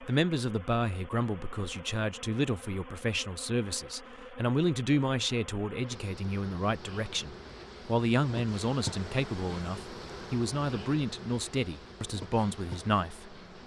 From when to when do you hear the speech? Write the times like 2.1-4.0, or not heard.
0.0-13.4.